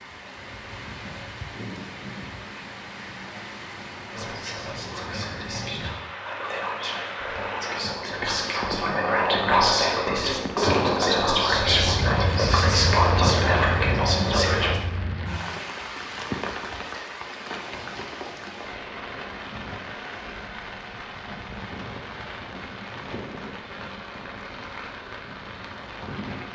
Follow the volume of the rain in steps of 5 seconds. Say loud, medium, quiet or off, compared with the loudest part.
medium, medium, loud, medium, medium, medium.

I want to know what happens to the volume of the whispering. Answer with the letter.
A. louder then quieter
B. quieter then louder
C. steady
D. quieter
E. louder
E.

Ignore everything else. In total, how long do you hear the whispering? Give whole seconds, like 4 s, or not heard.
11 s.